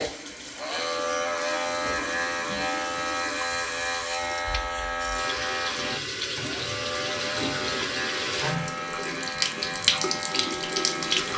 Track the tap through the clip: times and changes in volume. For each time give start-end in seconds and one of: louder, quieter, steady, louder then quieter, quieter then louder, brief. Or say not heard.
0.0-11.3 louder.